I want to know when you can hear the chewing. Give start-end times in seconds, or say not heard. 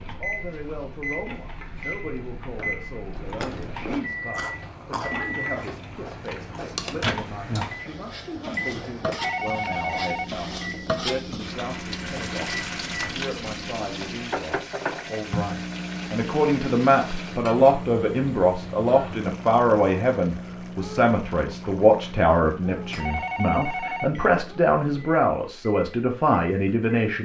3.1-9.2.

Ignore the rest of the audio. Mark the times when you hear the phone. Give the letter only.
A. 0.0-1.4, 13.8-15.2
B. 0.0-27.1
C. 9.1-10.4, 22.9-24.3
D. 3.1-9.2
C.